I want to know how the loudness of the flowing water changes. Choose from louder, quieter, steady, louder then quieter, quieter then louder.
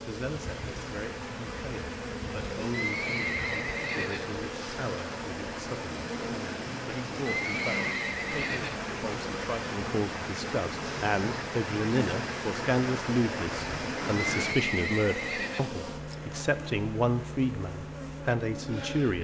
louder.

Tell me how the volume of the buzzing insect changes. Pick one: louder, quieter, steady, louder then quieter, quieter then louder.
steady.